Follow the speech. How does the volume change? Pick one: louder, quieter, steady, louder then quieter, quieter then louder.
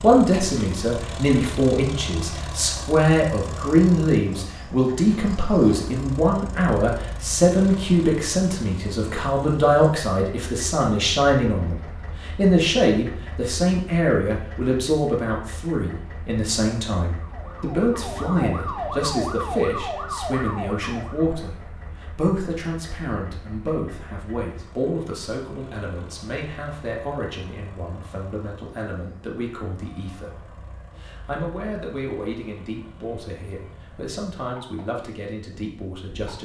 quieter.